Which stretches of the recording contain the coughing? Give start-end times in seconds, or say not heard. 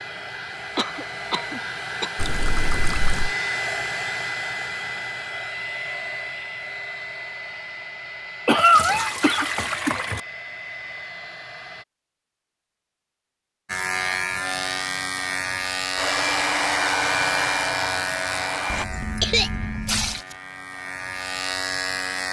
0.8-2.1, 8.4-10.1, 19.2-20.4.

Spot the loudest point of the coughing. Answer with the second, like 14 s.
9 s.